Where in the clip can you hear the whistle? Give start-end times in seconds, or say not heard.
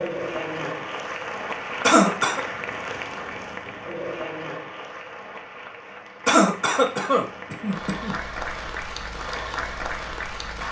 not heard.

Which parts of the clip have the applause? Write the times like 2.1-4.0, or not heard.
0.0-10.6.